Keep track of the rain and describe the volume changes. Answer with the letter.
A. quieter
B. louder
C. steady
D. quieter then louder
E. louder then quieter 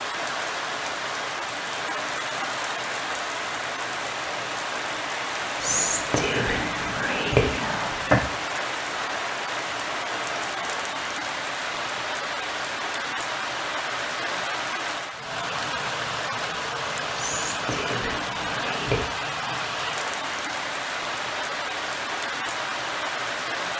C.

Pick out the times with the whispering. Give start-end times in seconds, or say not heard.
5.6-8.2, 17.1-19.1.